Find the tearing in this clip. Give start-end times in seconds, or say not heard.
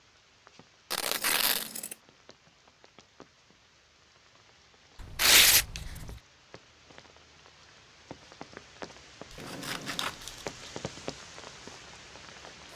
0.9-1.7, 5.2-5.7, 9.3-10.5.